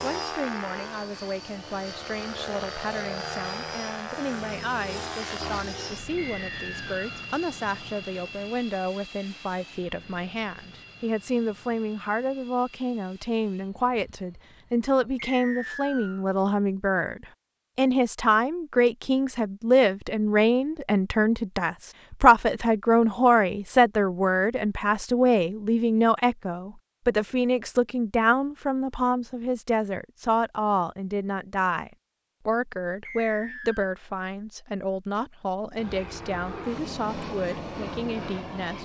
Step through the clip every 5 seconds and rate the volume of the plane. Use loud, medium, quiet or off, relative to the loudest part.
loud, loud, quiet, off, off, off, off, loud.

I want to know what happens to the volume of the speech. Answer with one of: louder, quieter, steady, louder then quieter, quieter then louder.
louder then quieter.